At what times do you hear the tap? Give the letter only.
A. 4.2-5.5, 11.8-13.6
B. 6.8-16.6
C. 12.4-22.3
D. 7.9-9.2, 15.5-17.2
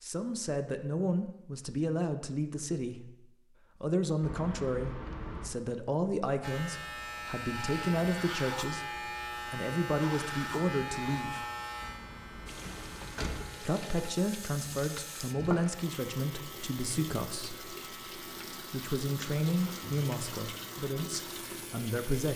C.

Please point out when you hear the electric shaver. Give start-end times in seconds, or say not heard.
6.4-22.1.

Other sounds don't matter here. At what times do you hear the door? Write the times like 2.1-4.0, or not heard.
4.2-5.5, 11.8-13.6.